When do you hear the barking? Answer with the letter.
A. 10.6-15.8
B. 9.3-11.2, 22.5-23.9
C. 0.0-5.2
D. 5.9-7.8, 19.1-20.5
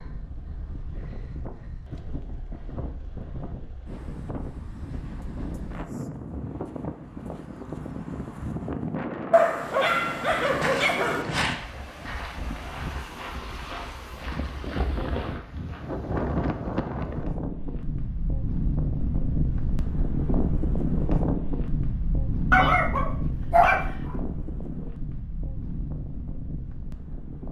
B.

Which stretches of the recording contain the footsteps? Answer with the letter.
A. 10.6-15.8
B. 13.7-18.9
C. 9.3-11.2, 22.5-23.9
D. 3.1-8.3
A.